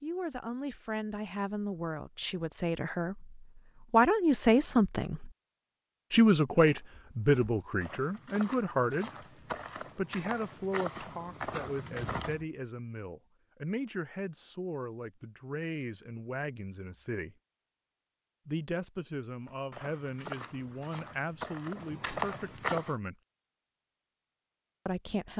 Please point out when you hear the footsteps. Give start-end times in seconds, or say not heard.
6.5-12.4, 19.4-22.9.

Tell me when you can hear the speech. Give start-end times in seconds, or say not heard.
0.0-5.3, 6.1-9.1, 9.9-17.4, 18.4-23.1, 24.9-25.3.